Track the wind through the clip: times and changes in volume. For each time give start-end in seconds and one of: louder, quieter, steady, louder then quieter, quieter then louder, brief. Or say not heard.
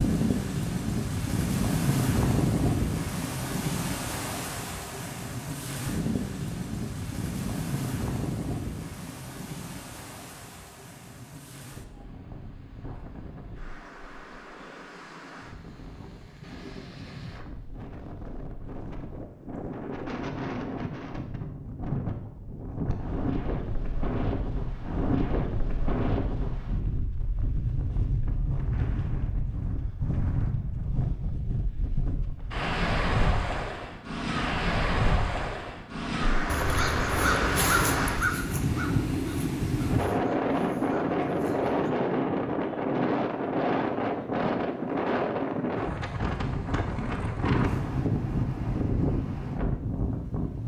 0.0-50.6 quieter then louder.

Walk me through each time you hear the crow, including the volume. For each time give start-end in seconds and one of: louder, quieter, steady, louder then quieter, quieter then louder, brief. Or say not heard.
36.5-41.9 quieter.